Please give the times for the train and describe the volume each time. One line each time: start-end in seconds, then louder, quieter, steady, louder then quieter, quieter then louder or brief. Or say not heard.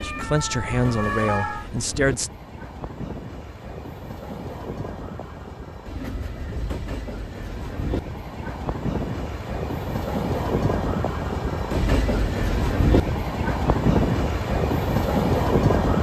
0.0-15.9 louder.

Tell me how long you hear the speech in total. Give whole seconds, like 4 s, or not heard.
2 s.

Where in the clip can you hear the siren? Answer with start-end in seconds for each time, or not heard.
0.0-1.6.